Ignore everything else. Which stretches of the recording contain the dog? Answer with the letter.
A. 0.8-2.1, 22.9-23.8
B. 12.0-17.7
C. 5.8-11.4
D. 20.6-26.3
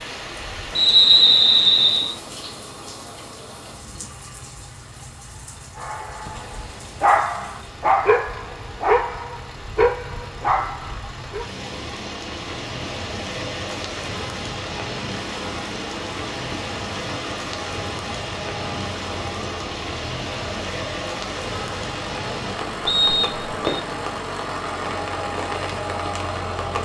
C.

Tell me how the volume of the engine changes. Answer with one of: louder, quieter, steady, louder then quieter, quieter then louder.
louder.